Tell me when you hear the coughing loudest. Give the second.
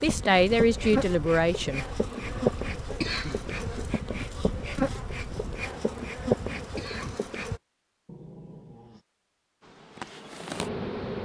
3 s.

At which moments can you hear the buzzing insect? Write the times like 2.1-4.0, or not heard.
0.0-7.6, 9.6-11.2.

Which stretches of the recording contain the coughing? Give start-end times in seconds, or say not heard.
3.0-3.5, 6.8-7.2.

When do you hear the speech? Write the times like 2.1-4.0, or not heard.
0.0-1.9.